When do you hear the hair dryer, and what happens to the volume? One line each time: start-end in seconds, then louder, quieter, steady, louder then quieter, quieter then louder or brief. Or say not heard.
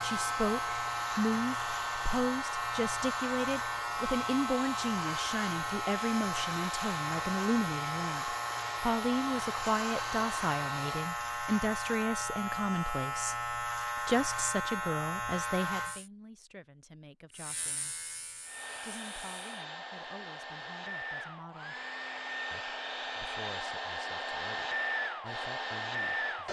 0.0-11.2 steady
18.4-26.4 louder.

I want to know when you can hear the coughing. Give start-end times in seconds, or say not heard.
not heard.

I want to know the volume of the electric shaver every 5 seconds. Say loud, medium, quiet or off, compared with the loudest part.
loud, loud, loud, medium, off, off.